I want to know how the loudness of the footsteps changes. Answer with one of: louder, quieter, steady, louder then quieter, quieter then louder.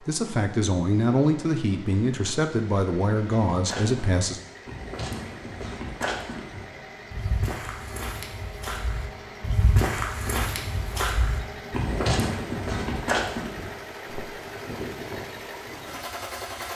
louder.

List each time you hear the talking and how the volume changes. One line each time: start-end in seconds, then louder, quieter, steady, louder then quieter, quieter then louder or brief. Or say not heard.
0.1-4.4 steady.